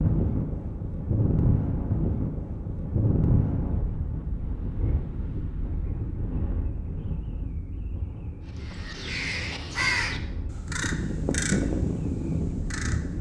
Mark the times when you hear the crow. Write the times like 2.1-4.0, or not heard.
8.6-13.1.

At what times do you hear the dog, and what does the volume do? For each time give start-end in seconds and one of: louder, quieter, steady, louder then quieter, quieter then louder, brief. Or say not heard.
not heard.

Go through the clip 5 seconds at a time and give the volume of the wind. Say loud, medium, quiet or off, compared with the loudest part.
loud, medium, medium.